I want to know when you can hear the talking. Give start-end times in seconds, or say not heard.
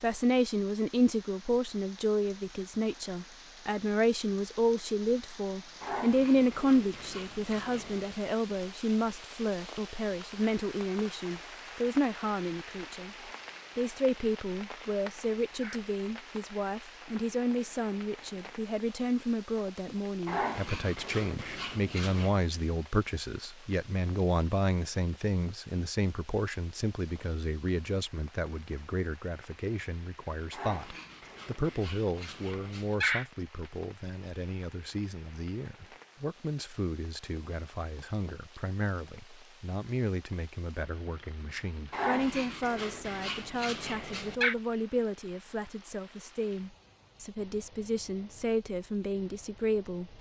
0.0-13.2, 13.8-50.1.